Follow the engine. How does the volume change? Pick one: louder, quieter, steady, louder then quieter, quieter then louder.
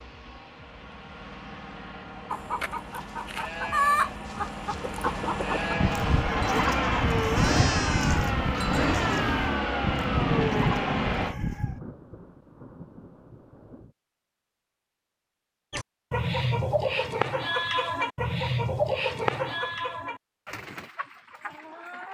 louder.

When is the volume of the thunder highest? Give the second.
11 s.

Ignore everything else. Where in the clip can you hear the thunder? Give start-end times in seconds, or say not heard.
10.1-13.9.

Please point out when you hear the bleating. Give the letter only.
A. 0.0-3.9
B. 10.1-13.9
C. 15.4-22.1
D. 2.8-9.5
D.